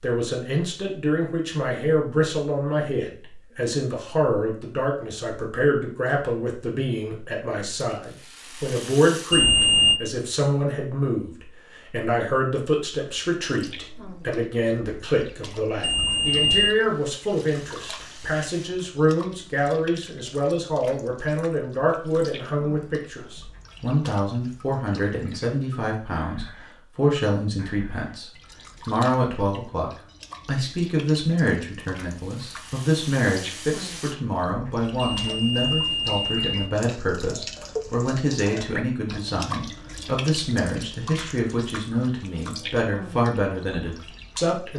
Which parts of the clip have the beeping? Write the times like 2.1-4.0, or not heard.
9.3-10.0, 15.8-16.8, 35.1-36.5.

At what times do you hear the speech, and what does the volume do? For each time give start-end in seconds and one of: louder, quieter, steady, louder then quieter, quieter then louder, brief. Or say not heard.
0.0-44.7 steady.